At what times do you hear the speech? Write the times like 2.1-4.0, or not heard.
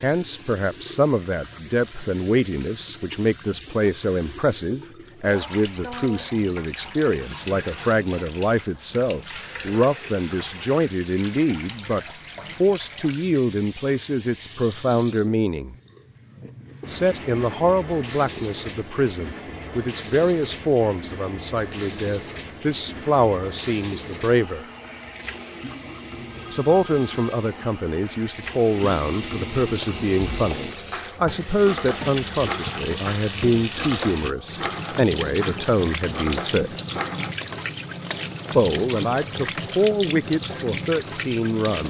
0.0-12.0, 12.6-15.8, 16.9-24.6, 26.5-36.7, 38.5-41.8.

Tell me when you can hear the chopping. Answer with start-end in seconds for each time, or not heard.
29.6-38.2.